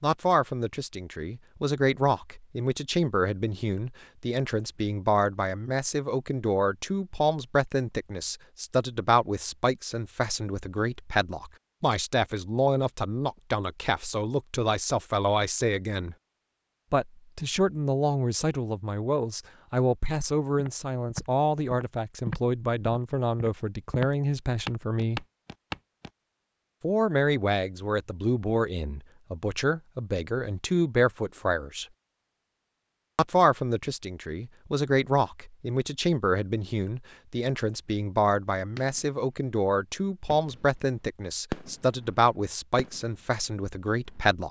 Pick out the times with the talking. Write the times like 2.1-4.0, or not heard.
0.0-16.1, 16.9-25.2, 26.8-31.9, 33.1-44.4.